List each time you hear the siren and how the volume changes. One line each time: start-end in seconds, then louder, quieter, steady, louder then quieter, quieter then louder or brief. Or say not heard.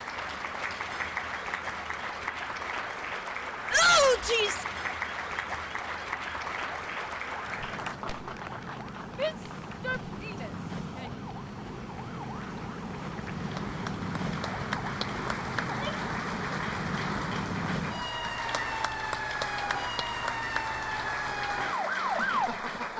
0.0-22.9 louder.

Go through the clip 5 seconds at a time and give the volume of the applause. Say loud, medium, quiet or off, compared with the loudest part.
loud, loud, medium, loud, loud.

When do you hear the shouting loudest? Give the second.
4 s.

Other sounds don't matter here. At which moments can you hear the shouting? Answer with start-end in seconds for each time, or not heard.
3.7-4.7, 9.2-11.2, 15.6-16.1.